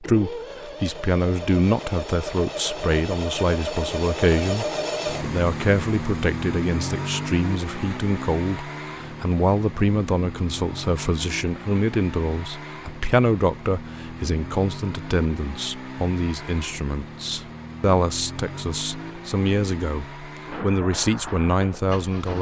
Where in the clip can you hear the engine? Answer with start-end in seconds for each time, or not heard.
0.0-22.3.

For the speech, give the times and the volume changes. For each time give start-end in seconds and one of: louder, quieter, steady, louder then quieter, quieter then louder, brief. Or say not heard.
0.0-22.3 steady.